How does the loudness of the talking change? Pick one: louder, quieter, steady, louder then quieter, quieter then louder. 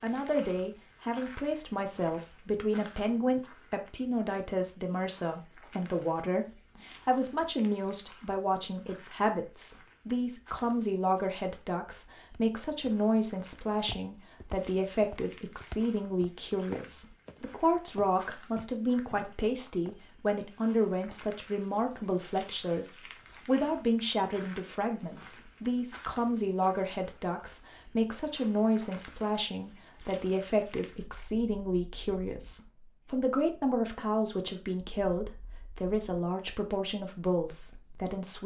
steady.